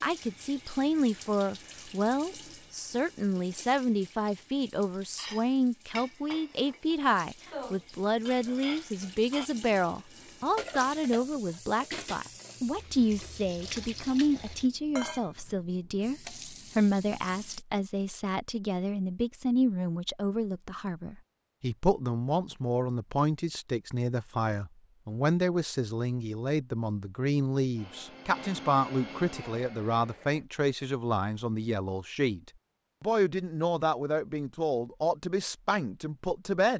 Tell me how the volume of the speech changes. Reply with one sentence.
The loudness of the speech stays about the same.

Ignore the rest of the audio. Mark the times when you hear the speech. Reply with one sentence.
You can hear the speech from 0.0 to 36.7 s.